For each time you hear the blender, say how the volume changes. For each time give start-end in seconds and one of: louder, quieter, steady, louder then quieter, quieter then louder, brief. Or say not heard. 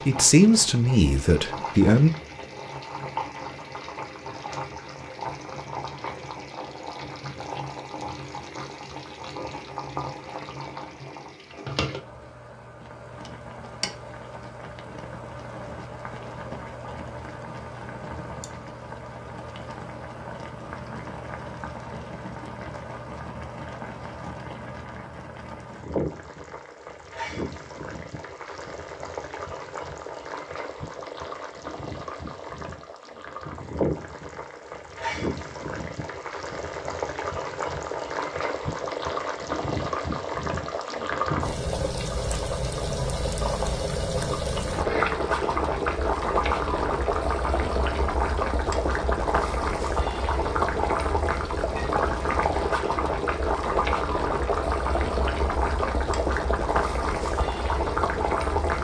not heard.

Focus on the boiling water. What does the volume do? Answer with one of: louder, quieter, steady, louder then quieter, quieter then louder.
louder.